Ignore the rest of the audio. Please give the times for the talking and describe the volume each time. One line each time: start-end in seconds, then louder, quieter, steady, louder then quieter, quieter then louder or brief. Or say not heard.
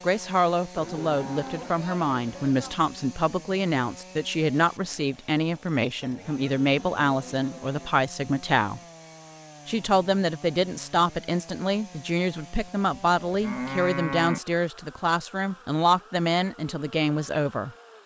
0.0-8.8 steady
9.7-17.7 steady.